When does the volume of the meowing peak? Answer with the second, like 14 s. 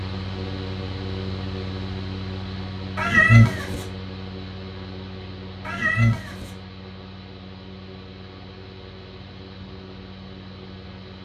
3 s.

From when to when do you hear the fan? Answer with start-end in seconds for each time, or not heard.
0.0-11.1.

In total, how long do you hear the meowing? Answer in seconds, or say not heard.
2 s.